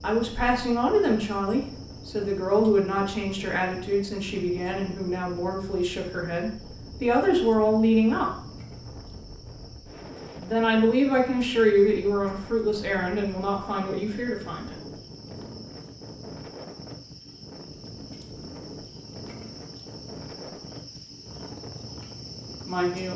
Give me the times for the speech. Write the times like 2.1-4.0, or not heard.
0.0-8.3, 10.4-14.7, 22.6-23.1.